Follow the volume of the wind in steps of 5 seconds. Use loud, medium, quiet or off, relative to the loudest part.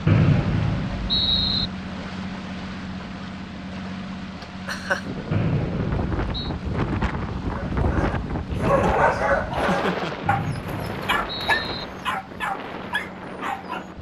off, loud, medium.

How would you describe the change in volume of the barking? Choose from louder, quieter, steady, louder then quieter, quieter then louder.
quieter.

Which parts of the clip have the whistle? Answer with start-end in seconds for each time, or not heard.
0.1-1.7, 5.3-6.5, 10.2-11.8.